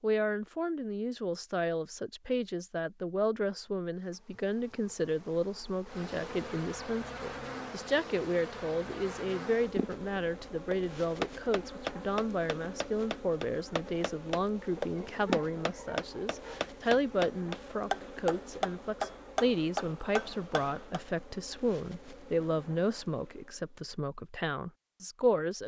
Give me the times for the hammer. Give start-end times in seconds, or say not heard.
10.7-21.0.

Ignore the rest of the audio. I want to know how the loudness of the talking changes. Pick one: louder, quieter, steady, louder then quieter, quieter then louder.
steady.